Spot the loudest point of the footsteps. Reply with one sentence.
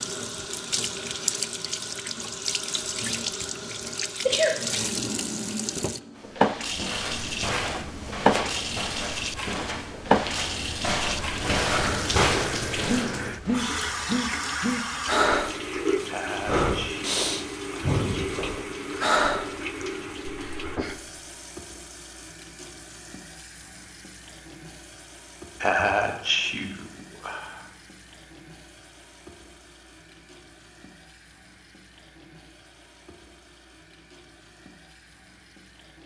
The volume of the footsteps peaks at 12 seconds.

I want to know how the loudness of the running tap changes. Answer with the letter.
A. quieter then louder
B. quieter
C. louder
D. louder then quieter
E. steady
B.